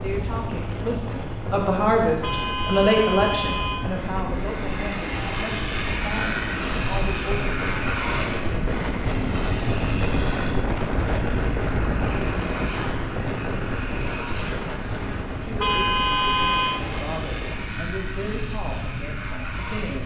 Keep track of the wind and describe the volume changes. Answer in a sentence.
The volume of the wind goes up, then down.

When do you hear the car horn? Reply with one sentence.
You can hear the car horn from 2.2 to 3.9 s and from 15.6 to 16.9 s.